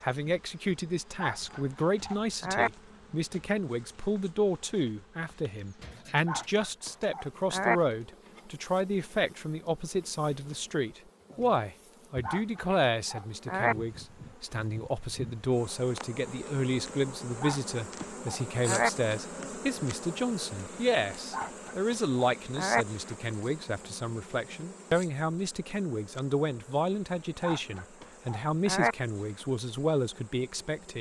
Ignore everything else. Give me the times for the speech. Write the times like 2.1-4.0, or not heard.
0.0-30.9.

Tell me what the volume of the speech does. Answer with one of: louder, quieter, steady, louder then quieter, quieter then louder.
steady.